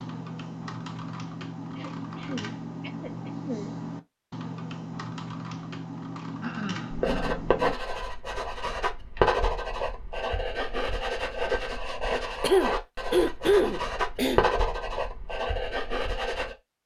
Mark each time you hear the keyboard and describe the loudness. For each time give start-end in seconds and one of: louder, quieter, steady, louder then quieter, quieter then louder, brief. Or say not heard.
0.0-7.8 steady.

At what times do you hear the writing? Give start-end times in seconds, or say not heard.
6.9-16.6.